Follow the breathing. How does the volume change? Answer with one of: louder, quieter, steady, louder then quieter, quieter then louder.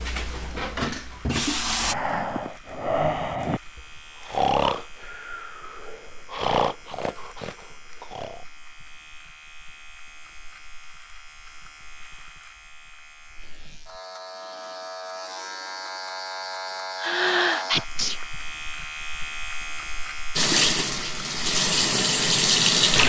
quieter.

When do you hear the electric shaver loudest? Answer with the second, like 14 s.
17 s.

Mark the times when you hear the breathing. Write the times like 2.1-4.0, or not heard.
1.8-8.4.